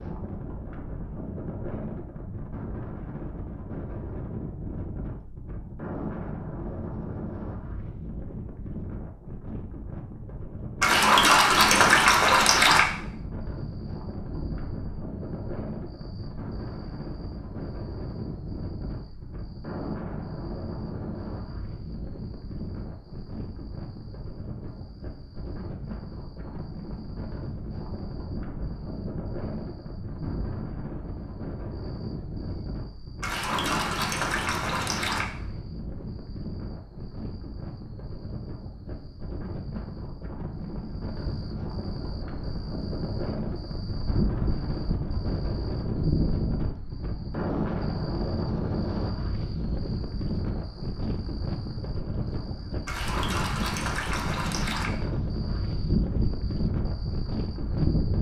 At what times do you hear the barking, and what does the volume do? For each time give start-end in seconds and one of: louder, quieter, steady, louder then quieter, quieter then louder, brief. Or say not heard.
not heard.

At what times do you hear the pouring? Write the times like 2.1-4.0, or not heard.
10.8-12.8, 33.2-35.2, 52.9-54.9.